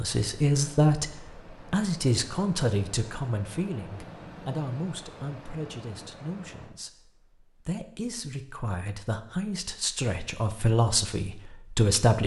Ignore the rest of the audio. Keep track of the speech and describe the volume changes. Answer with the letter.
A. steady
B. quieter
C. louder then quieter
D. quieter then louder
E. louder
D.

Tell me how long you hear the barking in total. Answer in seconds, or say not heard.
not heard.